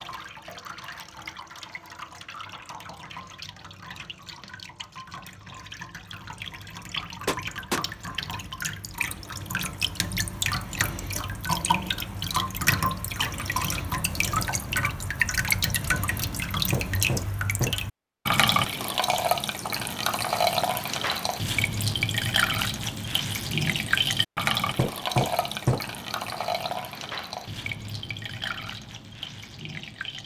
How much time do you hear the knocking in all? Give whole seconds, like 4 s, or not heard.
3 s.